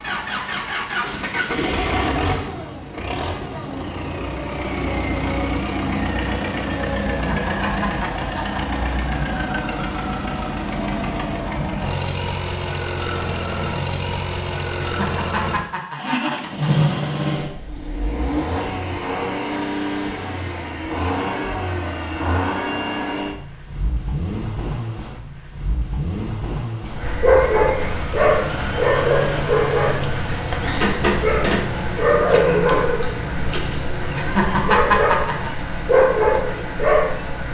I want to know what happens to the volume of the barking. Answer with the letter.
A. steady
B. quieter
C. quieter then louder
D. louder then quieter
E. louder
C.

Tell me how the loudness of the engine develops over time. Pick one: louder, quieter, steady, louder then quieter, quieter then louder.
steady.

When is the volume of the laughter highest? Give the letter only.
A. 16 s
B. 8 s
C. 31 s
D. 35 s
D.